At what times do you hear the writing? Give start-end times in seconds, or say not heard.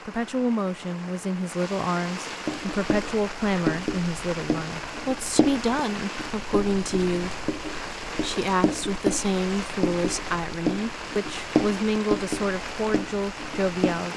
2.5-14.1.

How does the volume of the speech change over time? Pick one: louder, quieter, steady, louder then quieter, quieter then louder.
steady.